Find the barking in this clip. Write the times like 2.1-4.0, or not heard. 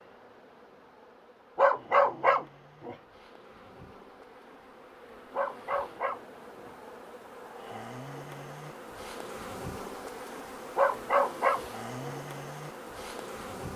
1.6-3.0, 5.3-6.7, 10.8-12.2.